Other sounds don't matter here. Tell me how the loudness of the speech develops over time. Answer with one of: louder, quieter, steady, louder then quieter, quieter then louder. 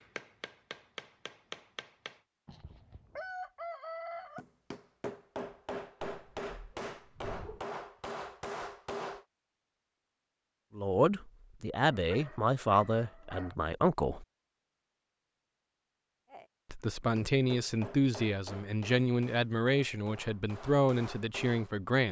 steady.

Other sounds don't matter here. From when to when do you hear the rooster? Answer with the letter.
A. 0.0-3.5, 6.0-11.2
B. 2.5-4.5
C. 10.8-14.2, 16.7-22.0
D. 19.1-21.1
B.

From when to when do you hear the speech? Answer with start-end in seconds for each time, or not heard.
10.8-14.2, 16.7-22.0.